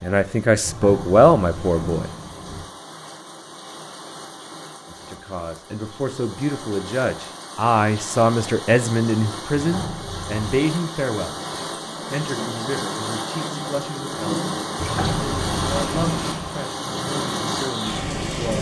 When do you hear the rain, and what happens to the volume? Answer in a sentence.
You can hear the rain from 0.0 to 18.5 s, getting louder.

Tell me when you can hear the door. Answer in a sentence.
You can hear the door from 0.6 to 2.6 s, from 9.6 to 10.4 s and from 14.8 to 16.6 s.